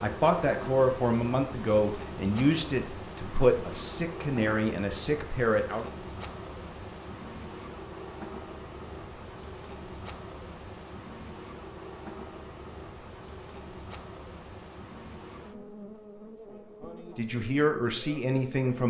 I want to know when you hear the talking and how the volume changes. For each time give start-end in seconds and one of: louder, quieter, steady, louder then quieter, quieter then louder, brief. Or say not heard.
0.0-5.9 steady
17.1-18.8 brief.